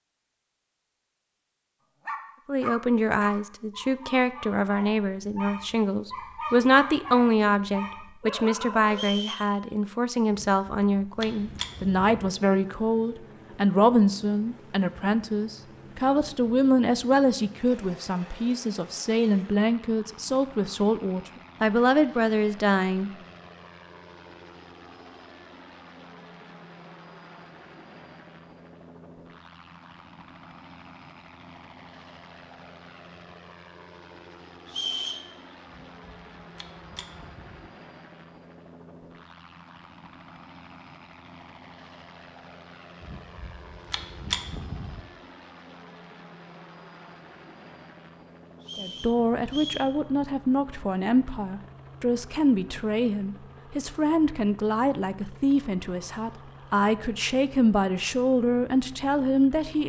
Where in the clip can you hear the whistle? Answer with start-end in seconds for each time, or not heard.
8.9-9.5, 34.6-35.2, 48.6-49.9.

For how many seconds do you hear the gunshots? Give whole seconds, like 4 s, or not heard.
6 s.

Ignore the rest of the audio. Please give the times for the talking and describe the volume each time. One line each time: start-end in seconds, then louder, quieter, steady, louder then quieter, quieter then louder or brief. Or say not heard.
2.5-23.1 steady
48.8-59.8 steady.